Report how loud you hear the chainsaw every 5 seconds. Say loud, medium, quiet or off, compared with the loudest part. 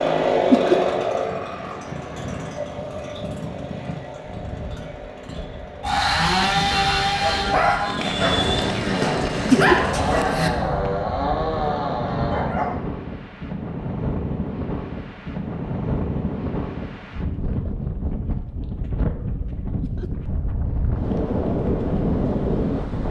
loud, loud, loud, off, off.